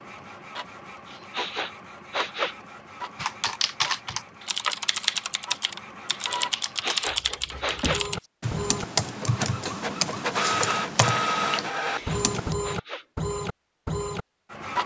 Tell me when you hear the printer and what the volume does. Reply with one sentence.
The printer can be heard from 0.0 to 14.8 s, getting louder.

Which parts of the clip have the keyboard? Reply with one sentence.
The keyboard can be heard from 3.1 to 12.6 s.